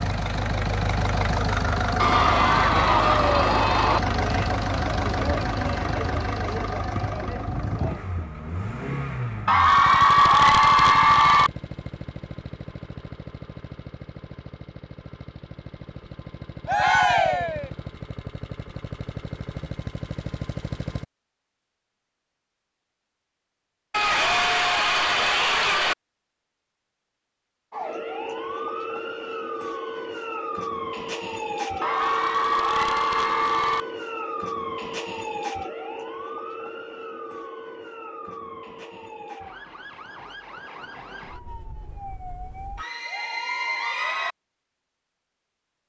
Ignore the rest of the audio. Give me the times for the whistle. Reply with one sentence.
You can't hear the whistle here.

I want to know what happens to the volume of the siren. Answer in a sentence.
The volume of the siren goes down.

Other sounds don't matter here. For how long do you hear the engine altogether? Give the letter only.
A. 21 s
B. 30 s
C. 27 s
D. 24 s
A.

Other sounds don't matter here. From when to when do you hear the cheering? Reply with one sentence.
The cheering can be heard from 1.9 to 4.0 s, from 9.4 to 11.5 s, from 16.6 to 17.7 s, from 23.9 to 25.9 s, from 31.8 to 33.9 s and from 42.8 to 44.4 s.